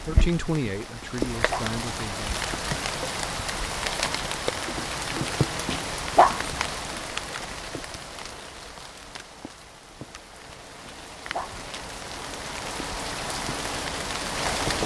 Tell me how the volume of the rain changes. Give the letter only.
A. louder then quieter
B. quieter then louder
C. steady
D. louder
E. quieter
B.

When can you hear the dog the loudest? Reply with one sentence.
The volume of the dog peaks at 6 seconds.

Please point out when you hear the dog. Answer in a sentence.
The dog can be heard from 1.0 to 1.8 s, from 5.7 to 6.5 s and from 10.8 to 11.7 s.